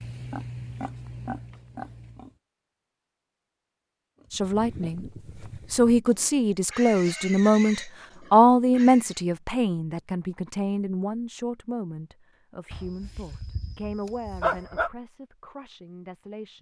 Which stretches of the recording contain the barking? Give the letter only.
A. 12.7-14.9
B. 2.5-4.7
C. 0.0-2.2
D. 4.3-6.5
A.